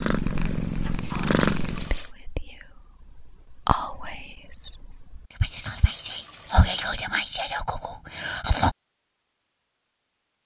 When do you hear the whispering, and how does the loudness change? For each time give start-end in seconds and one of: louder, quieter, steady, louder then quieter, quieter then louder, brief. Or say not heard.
1.1-8.8 louder.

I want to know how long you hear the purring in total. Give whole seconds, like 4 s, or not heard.
2 s.